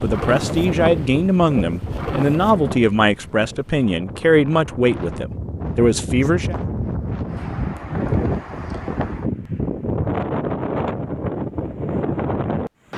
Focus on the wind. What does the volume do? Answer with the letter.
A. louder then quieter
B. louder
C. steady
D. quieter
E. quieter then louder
E.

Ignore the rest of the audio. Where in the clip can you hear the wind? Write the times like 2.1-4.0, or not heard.
0.0-12.9.